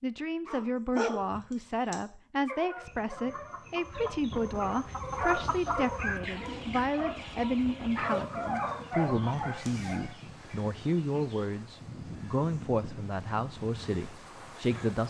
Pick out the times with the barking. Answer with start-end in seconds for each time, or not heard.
0.5-10.1.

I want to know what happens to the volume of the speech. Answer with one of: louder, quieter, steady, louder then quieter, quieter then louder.
steady.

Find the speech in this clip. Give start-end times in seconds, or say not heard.
0.0-15.0.